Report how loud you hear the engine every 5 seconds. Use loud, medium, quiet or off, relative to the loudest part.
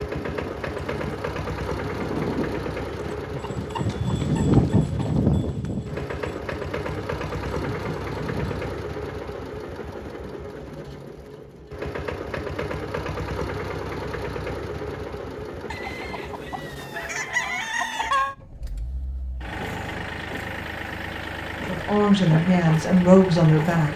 loud, loud, loud, medium, loud.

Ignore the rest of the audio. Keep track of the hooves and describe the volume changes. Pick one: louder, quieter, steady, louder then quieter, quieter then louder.
louder then quieter.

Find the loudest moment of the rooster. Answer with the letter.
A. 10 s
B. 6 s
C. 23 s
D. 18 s
D.